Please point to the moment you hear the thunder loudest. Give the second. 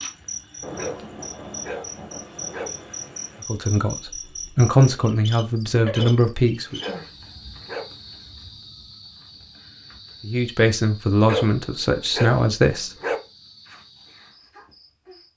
1 s.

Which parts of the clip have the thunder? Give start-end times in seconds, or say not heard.
0.6-3.5.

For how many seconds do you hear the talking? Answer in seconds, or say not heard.
6 s.